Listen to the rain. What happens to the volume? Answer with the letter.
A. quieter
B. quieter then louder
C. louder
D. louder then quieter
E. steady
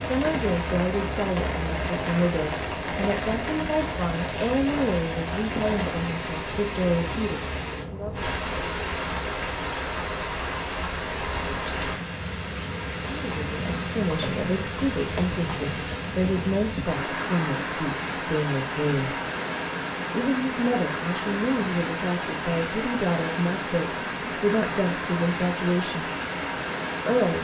E.